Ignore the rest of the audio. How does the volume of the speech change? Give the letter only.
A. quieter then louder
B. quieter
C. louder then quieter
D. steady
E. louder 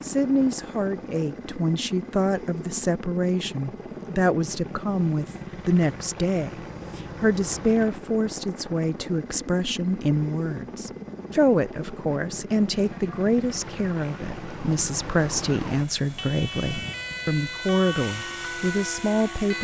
D.